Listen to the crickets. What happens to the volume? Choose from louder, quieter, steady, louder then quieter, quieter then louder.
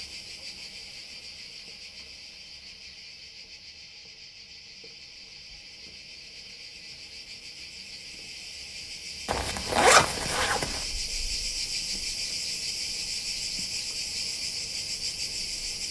louder.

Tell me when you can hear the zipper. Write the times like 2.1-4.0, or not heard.
9.2-10.8.